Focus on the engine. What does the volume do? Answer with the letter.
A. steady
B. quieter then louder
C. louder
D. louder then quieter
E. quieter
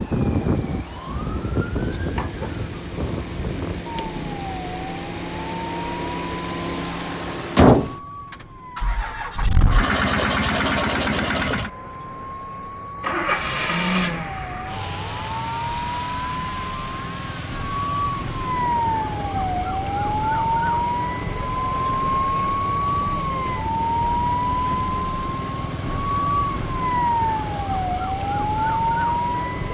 D.